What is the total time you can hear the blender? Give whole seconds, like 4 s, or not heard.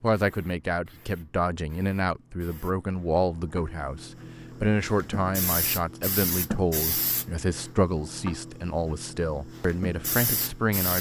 not heard.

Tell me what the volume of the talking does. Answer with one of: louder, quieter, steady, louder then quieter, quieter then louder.
steady.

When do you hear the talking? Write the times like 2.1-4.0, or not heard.
0.0-10.9.